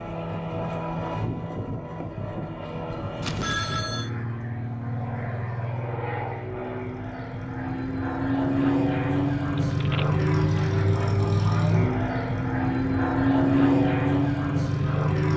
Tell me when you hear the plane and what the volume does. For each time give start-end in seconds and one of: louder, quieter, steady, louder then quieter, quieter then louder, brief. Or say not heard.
0.0-15.3 louder.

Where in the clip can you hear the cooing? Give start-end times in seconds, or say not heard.
not heard.